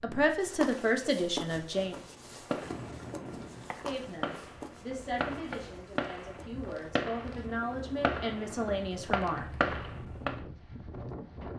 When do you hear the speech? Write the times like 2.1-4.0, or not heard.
0.0-2.0, 3.8-9.6.